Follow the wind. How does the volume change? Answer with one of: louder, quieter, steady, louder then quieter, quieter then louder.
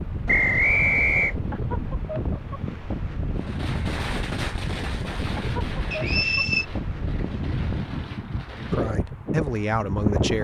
steady.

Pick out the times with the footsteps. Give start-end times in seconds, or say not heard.
not heard.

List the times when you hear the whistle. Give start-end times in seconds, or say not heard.
0.2-1.4, 5.9-6.7.